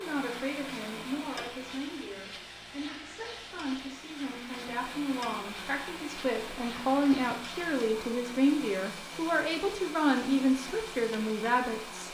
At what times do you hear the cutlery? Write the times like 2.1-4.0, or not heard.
not heard.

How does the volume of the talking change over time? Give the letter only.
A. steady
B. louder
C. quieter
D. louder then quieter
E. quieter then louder
B.